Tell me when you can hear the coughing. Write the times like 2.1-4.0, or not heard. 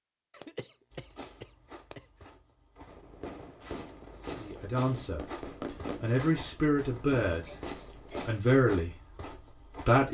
0.3-2.3, 7.5-8.3.